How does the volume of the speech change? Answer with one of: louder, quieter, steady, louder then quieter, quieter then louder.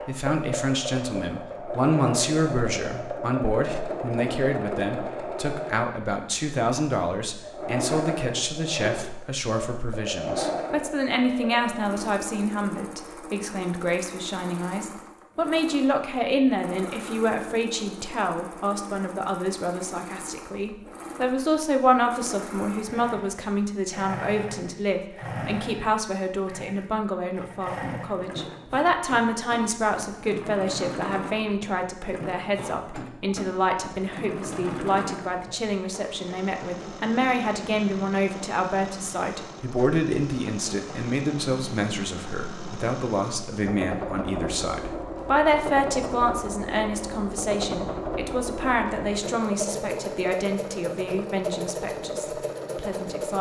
steady.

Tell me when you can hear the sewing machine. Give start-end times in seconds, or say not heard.
0.0-53.3.